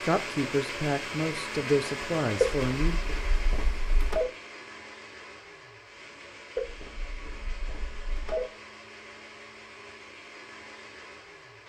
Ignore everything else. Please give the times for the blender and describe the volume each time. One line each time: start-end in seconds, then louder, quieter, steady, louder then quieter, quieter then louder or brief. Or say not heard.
0.0-11.6 quieter.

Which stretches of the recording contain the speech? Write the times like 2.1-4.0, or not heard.
0.0-3.0.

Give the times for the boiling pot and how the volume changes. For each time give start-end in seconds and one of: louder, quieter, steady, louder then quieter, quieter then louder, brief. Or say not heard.
not heard.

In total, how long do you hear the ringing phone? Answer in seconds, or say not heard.
4 s.